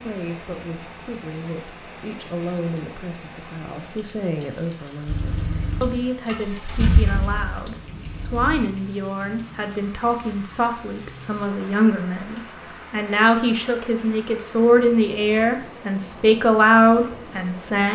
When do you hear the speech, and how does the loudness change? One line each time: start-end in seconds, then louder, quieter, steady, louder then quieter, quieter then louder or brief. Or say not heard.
0.0-17.9 louder.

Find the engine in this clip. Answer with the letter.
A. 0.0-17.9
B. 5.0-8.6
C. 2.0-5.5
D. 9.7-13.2
B.